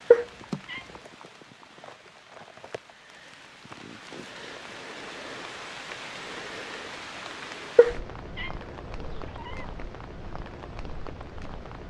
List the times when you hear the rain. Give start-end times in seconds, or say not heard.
0.0-11.8.